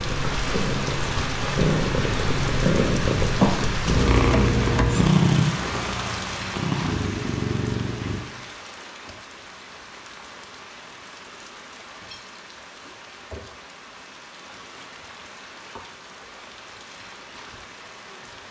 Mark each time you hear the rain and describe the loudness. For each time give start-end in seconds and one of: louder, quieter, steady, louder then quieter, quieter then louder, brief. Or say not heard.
0.0-18.4 quieter.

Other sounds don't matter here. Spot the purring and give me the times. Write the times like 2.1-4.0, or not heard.
0.0-8.2.